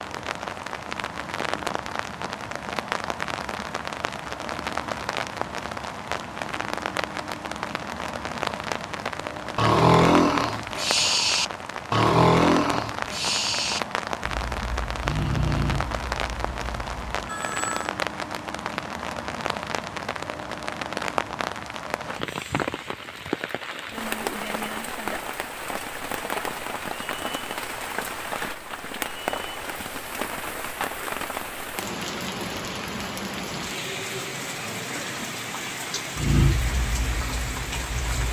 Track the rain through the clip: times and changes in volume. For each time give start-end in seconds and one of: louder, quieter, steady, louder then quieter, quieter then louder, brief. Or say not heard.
0.0-38.2 steady.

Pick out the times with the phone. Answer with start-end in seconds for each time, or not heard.
17.2-17.9.